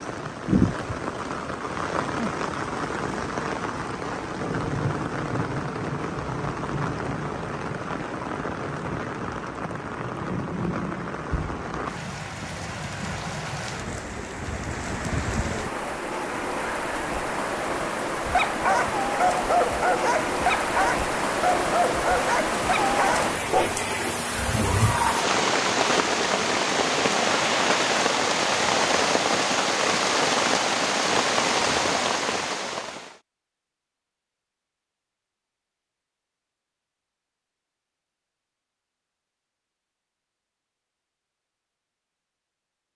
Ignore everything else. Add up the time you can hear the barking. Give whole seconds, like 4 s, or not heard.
6 s.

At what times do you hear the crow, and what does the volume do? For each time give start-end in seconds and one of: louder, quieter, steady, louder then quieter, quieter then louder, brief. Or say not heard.
not heard.